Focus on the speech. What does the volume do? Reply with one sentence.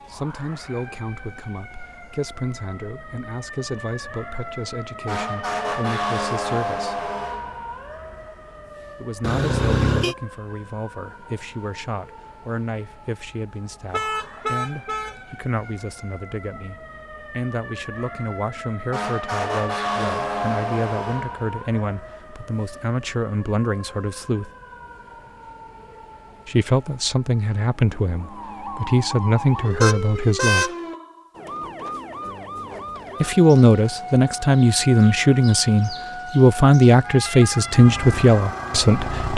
The loudness of the speech goes up.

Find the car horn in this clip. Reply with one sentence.
You can hear the car horn from 9.2 to 10.2 s, from 13.9 to 15.2 s and from 29.8 to 30.8 s.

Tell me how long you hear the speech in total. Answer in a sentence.
The speech can be heard for 33 seconds in total.